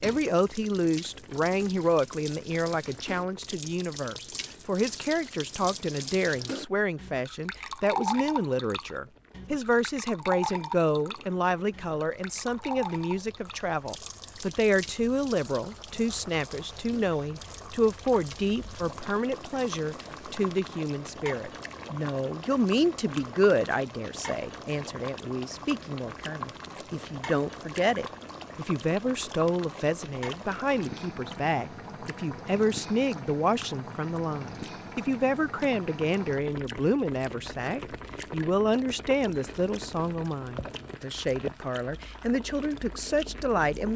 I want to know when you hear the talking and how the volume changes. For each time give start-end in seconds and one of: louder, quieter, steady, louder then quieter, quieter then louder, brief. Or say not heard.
0.0-43.9 steady.